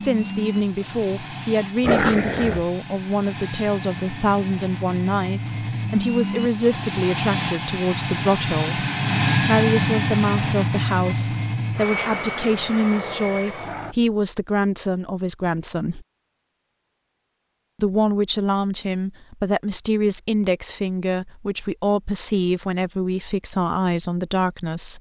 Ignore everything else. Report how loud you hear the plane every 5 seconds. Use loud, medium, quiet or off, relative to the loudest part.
medium, loud, loud, off, off.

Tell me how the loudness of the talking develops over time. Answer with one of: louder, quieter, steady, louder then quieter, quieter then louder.
steady.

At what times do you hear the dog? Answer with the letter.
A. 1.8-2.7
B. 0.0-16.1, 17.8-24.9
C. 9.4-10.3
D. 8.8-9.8
A.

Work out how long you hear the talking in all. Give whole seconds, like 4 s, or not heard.
23 s.